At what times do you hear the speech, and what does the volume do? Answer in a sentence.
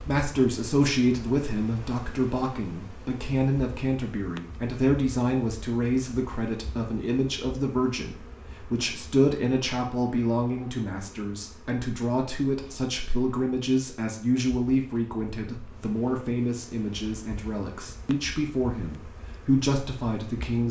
The speech can be heard from 0.1 to 20.6 s, at a steady volume.